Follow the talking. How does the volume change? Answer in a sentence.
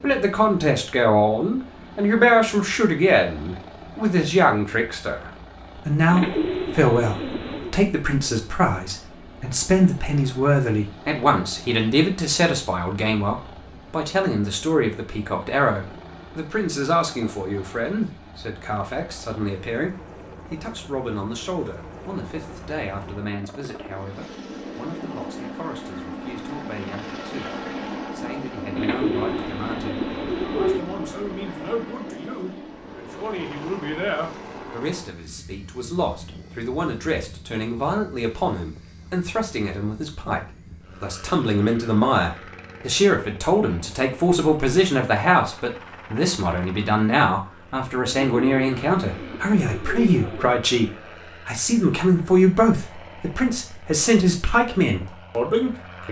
The volume of the talking goes down, then up.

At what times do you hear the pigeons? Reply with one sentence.
You can hear the pigeons from 6.0 to 7.8 s, from 28.8 to 30.8 s and from 48.0 to 50.6 s.